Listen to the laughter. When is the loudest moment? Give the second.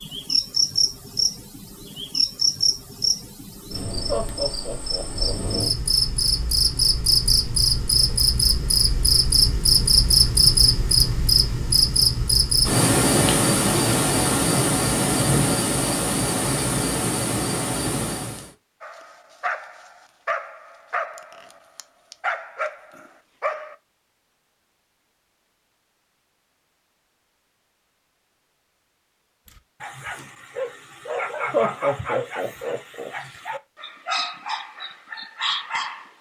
32 s.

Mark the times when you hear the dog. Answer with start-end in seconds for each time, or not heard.
18.8-23.8, 29.4-36.1.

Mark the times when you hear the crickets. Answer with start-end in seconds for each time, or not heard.
0.0-18.5.